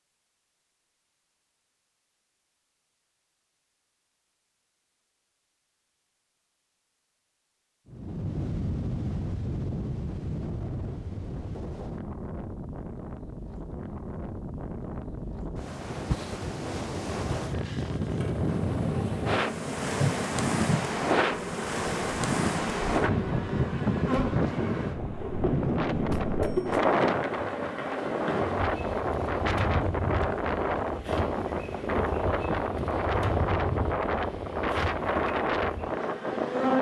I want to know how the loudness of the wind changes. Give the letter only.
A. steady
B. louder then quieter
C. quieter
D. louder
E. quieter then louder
D.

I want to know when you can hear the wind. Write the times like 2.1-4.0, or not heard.
7.9-36.7.